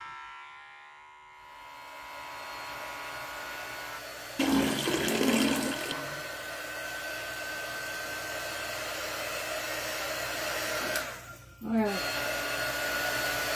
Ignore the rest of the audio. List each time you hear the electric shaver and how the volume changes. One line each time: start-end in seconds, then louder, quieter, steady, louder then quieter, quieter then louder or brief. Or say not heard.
0.0-4.0 louder.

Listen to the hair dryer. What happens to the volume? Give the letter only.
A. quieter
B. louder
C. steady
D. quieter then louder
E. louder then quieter
B.